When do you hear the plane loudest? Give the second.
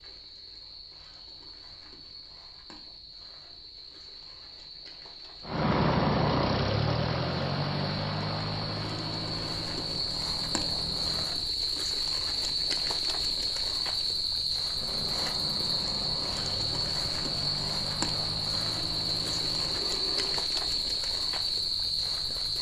6 s.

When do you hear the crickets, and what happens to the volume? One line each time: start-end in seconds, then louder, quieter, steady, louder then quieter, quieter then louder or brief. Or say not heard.
0.0-22.5 louder.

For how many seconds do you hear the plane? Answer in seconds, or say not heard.
12 s.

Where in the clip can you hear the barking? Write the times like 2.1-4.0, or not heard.
not heard.